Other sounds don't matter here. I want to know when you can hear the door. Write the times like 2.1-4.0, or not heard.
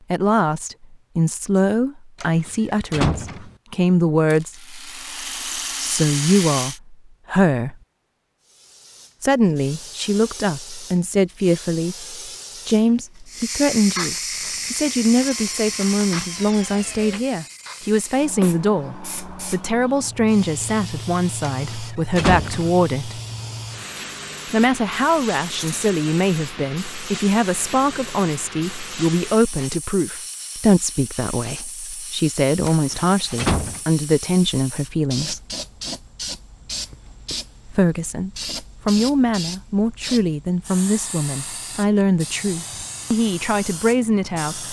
2.2-3.5, 21.5-22.8, 32.6-33.8.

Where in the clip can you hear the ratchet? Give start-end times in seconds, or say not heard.
not heard.